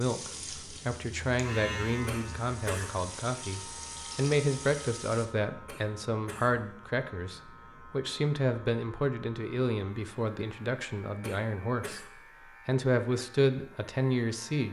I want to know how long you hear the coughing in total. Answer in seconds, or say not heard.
3 s.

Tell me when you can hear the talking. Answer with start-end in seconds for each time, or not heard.
0.0-12.1, 12.7-14.6.